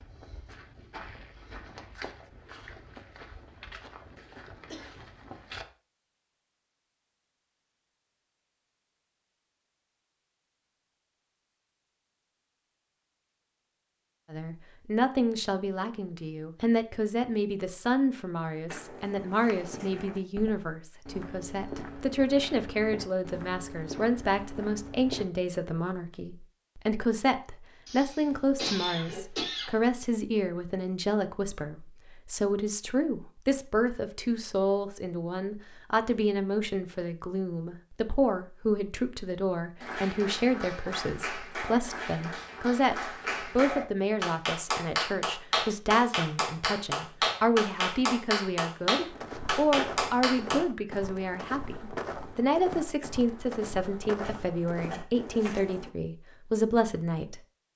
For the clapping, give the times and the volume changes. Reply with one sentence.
The clapping can be heard from 39.8 to 50.6 s, getting louder.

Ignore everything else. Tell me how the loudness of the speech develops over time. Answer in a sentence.
The loudness of the speech stays about the same.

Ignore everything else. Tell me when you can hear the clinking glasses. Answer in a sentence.
You can't hear the clinking glasses here.